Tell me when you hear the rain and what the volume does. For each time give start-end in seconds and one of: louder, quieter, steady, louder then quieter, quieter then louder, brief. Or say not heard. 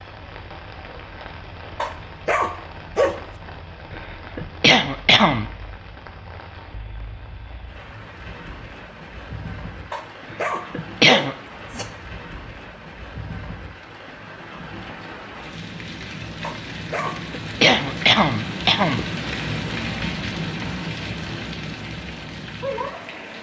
0.0-23.3 louder.